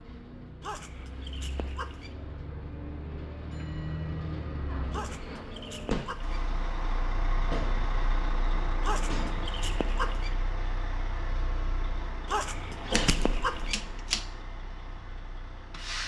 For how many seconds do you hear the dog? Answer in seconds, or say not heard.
6 s.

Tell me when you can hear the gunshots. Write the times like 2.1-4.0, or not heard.
12.9-14.2.